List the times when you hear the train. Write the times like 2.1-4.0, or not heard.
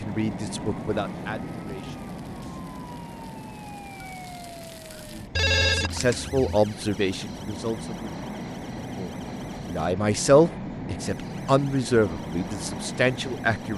0.0-13.7.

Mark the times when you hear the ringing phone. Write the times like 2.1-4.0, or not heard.
5.3-6.5.